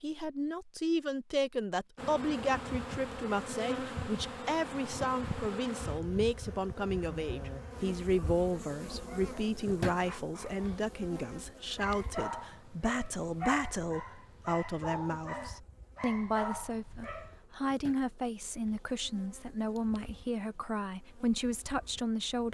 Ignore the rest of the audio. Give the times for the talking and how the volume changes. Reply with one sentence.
You can hear the talking from 0.0 to 22.4 s, at a steady volume.